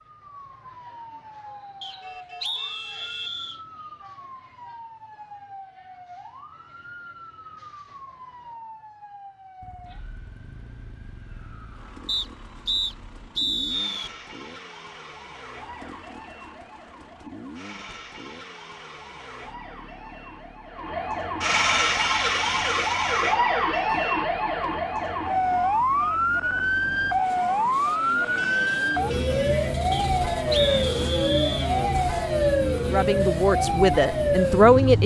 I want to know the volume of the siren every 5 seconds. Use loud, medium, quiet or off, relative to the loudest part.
quiet, quiet, quiet, quiet, loud, loud, loud.